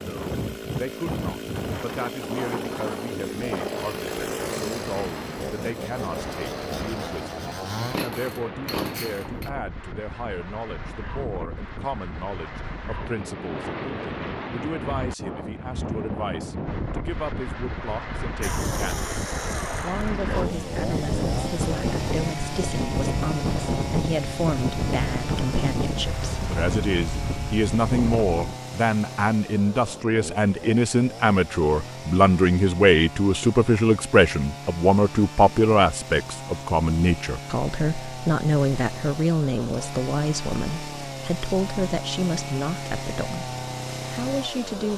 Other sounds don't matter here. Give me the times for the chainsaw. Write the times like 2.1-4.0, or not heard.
0.0-9.5, 18.4-44.9.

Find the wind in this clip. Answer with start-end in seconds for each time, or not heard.
0.0-28.6.